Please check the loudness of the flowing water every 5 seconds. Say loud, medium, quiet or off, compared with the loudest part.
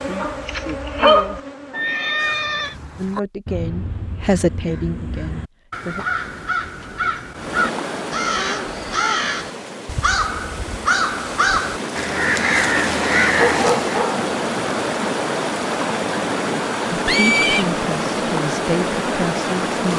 off, medium, loud, loud.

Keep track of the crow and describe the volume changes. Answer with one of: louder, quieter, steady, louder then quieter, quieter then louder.
louder.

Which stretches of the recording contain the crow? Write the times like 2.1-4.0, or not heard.
2.1-13.9.